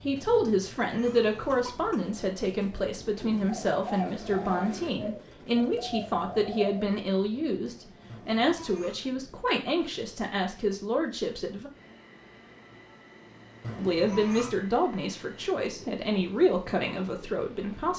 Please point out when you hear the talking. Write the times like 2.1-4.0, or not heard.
0.0-11.7, 13.8-17.9.